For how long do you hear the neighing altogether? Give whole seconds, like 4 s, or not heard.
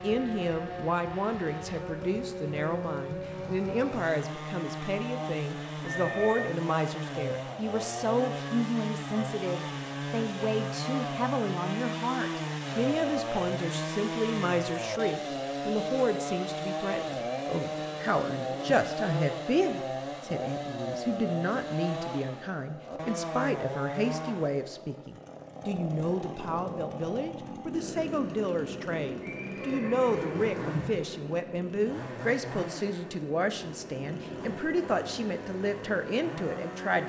4 s.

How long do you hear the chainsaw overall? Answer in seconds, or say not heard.
37 s.